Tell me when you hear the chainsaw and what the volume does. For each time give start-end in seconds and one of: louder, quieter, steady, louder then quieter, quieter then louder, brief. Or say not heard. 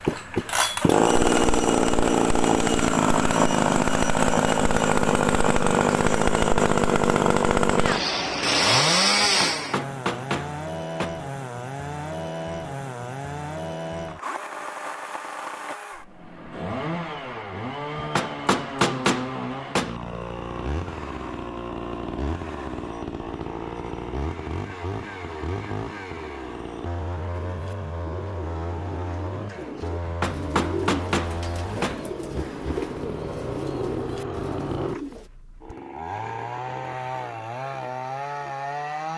0.0-39.1 quieter.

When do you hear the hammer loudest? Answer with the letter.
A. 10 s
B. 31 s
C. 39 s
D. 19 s
D.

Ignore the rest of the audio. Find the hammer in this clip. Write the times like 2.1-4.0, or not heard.
9.2-11.1, 17.9-19.9, 30.1-32.0.